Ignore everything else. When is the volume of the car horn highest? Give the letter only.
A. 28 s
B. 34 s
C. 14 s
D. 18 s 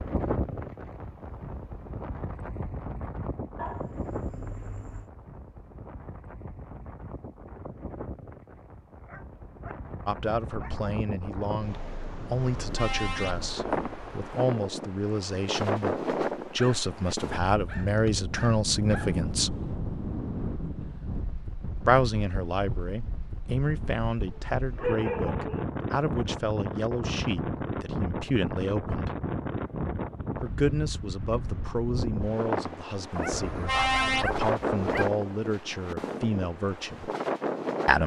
B.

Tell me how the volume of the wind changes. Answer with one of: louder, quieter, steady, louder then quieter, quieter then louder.
louder.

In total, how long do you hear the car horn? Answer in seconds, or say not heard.
3 s.